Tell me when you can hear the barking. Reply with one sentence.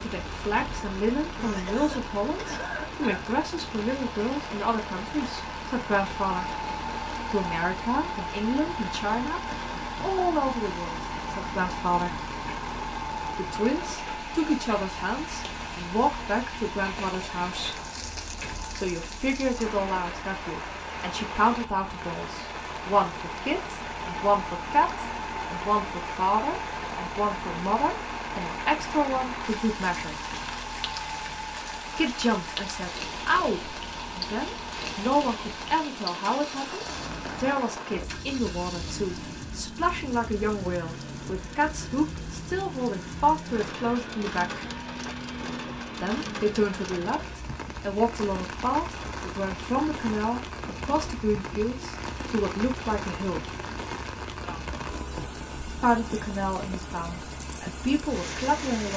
The barking can't be heard in this clip.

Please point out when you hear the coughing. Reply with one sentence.
The coughing can be heard from 1.4 to 3.2 s.